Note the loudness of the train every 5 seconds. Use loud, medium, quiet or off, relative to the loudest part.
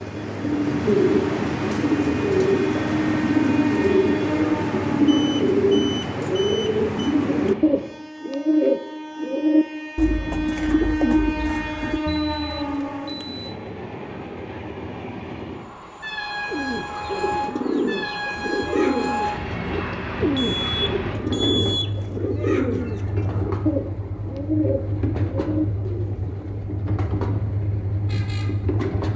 loud, medium, loud, loud, loud, loud.